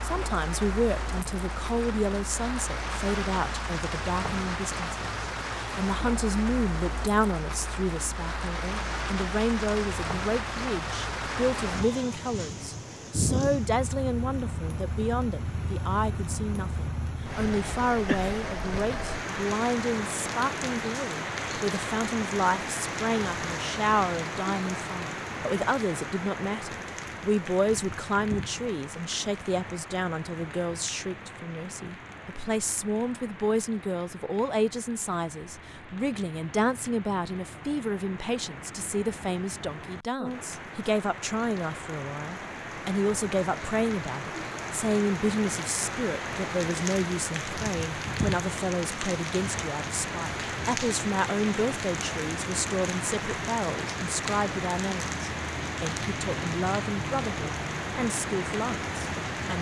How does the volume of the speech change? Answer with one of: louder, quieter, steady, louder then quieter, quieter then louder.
steady.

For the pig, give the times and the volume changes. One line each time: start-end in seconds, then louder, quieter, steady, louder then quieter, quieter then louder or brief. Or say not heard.
not heard.